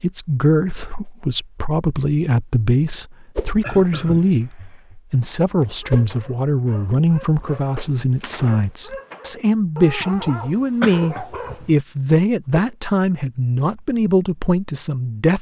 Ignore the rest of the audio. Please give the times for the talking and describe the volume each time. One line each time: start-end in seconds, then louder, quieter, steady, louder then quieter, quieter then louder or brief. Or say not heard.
0.0-15.3 steady.